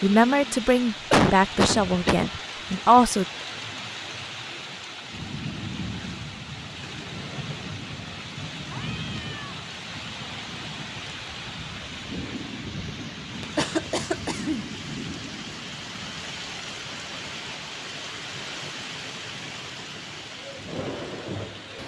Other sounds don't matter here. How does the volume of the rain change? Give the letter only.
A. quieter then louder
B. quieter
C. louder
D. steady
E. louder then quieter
D.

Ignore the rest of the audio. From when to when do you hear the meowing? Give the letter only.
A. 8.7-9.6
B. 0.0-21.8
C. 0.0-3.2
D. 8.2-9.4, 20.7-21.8
A.